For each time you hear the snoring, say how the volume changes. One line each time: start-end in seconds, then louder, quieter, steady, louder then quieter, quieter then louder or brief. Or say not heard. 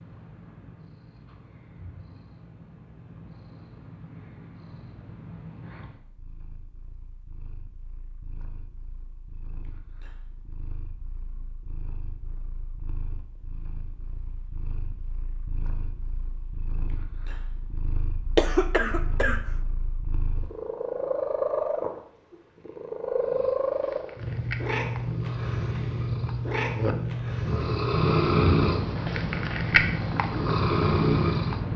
23.1-31.6 louder.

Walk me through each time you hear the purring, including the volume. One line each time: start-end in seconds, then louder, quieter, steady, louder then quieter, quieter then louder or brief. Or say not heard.
0.0-31.7 quieter then louder.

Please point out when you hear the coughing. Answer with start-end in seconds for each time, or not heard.
18.4-19.4.